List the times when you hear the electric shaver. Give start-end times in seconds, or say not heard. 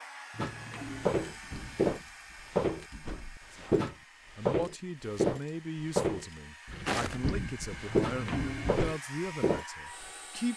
not heard.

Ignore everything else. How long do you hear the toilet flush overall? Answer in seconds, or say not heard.
2 s.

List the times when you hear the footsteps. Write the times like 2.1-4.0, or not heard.
0.3-10.1.